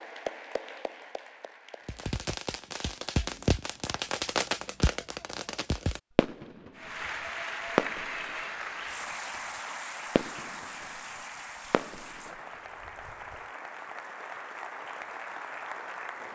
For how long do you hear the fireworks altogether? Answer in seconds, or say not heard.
10 s.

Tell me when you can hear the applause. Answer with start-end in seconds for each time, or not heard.
0.0-2.1, 6.8-16.2.